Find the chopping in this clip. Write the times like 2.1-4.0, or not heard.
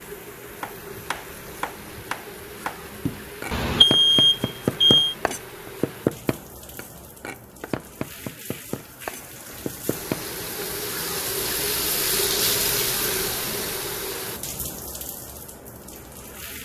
0.6-10.7.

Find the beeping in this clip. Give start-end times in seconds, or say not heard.
3.5-5.2.